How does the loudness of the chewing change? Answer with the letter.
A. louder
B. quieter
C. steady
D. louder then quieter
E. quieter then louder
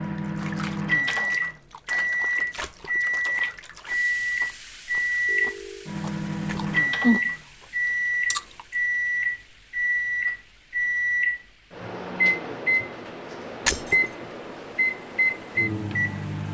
A.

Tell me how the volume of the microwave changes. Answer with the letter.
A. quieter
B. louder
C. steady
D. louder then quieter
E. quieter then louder
C.